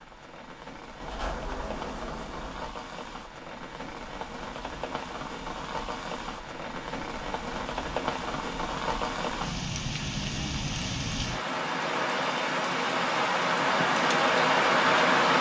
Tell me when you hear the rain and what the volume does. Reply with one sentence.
You can hear the rain from 0.0 to 15.3 s, getting louder.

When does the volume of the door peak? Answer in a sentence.
The loudest moment of the door is at 1 second.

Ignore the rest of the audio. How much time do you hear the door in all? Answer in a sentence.
The door can be heard for 2 seconds in total.